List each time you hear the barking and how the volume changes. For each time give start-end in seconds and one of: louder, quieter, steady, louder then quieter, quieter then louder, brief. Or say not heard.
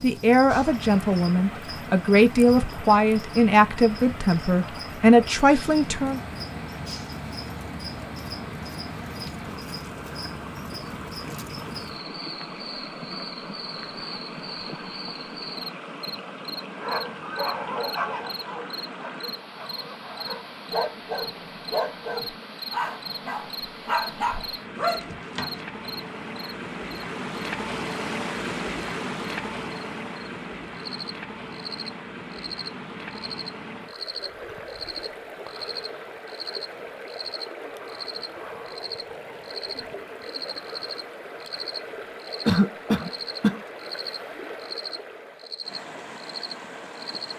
16.8-25.6 quieter then louder.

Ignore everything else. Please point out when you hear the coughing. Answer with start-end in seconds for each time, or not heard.
42.5-43.6.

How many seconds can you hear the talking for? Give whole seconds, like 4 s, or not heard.
6 s.